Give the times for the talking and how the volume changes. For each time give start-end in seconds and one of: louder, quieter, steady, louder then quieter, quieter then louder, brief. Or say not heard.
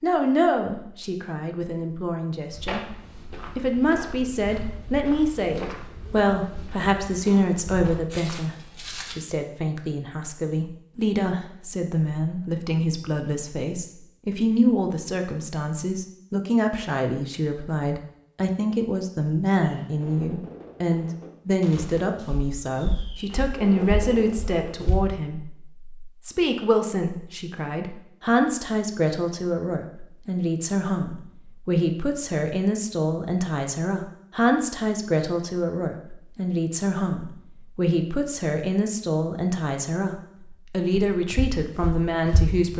0.0-2.8 brief
3.5-42.7 steady.